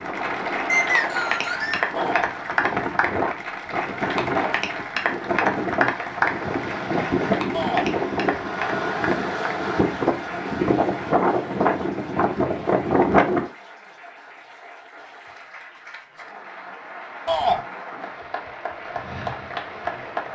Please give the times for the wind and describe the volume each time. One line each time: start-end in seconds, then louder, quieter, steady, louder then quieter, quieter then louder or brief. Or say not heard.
0.0-13.5 louder.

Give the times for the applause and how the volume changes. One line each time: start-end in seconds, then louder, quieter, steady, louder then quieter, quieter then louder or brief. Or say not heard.
0.0-20.2 quieter then louder.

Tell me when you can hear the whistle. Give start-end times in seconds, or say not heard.
0.7-1.9.